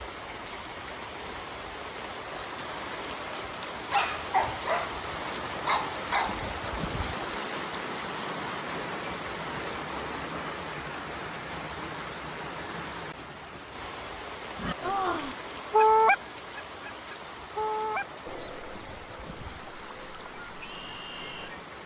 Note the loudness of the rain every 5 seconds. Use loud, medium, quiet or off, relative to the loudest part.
loud, loud, loud, medium, medium.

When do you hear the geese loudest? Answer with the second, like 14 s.
16 s.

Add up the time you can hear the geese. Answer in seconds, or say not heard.
7 s.